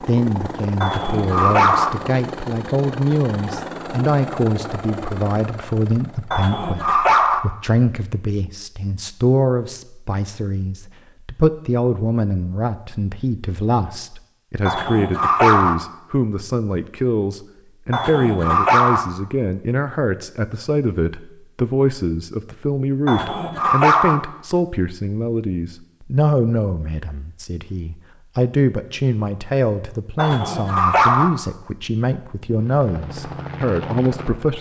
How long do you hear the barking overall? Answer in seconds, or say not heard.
7 s.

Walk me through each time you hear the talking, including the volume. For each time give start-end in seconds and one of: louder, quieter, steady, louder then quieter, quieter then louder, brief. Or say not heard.
0.0-34.5 steady.